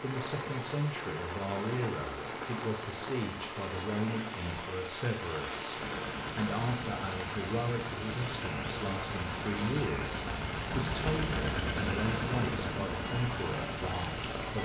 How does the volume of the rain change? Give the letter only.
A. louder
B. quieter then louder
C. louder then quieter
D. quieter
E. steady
E.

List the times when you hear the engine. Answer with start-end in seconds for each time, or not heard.
5.8-14.6.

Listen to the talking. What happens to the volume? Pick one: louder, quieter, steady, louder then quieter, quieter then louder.
steady.